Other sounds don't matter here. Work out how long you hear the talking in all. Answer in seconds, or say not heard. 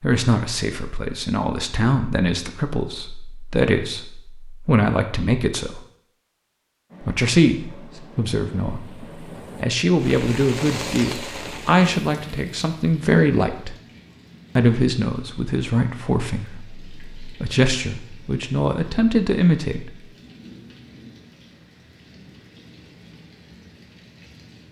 18 s.